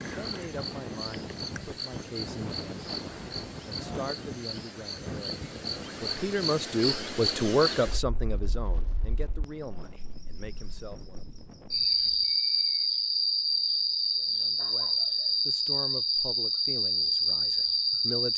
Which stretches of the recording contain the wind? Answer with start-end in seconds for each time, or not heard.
0.0-12.4.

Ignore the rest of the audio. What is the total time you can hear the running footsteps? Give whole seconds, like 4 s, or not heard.
not heard.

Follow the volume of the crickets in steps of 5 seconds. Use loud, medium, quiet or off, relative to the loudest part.
quiet, medium, loud, loud.